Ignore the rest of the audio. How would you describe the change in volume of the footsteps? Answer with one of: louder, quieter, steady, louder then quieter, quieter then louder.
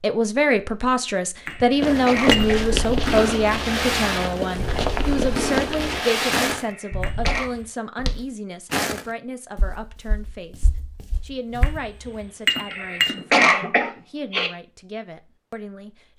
quieter.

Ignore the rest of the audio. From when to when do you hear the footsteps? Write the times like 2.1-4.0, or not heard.
1.8-11.8.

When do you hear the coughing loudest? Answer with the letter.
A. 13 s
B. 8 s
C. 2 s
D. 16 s
A.